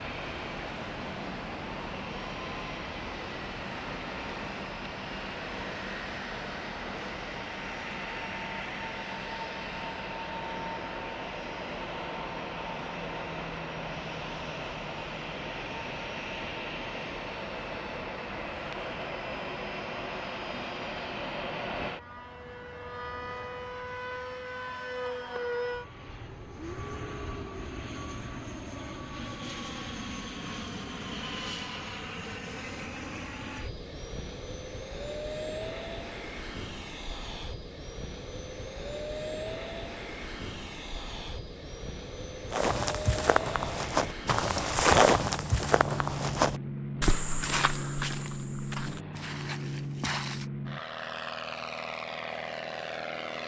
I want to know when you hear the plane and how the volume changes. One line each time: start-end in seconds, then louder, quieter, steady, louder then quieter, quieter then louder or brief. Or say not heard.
0.0-53.4 steady.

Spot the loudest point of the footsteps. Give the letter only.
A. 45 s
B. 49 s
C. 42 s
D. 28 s
A.